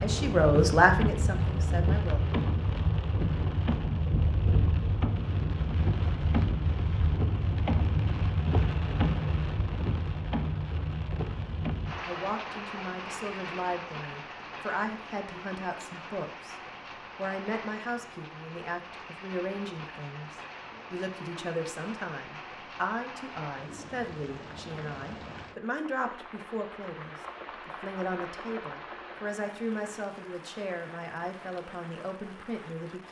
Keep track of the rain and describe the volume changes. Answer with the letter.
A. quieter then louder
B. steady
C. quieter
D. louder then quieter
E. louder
C.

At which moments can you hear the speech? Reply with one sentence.
The speech can be heard from 0.0 to 2.2 s, from 12.1 to 16.6 s and from 17.1 to 33.0 s.